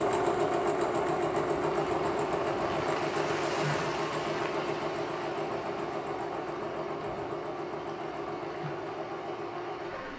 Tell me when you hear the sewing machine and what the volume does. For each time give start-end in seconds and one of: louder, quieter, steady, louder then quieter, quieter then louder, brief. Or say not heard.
0.0-10.1 quieter.